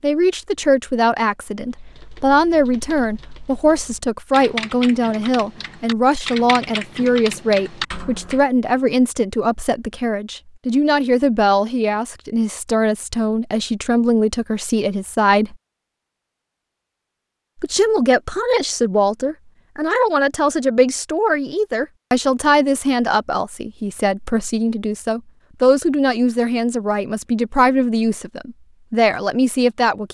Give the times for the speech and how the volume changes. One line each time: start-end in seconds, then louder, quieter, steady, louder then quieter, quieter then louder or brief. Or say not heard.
0.0-15.6 steady
17.6-30.0 steady.